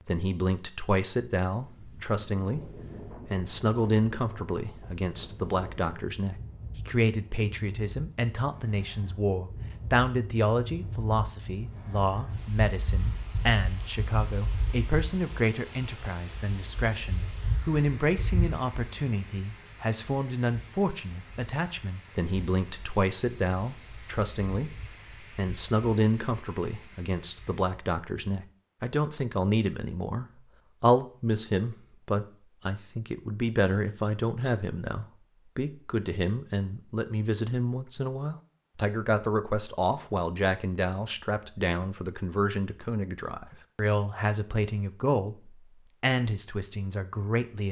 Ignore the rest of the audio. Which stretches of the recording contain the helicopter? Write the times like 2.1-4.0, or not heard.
not heard.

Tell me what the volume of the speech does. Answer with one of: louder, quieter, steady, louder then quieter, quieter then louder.
steady.